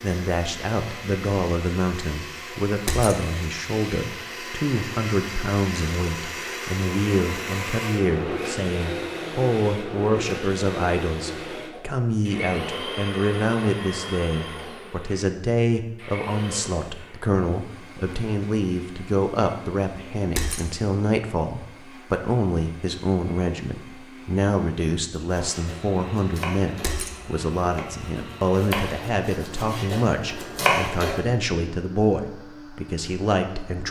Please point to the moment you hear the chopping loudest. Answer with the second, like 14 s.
31 s.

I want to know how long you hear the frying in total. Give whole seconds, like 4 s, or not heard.
not heard.